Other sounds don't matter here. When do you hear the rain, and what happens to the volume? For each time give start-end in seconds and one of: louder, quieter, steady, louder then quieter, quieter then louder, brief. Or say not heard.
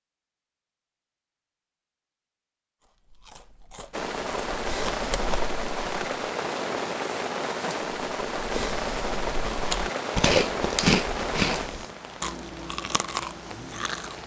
3.9-14.2 quieter.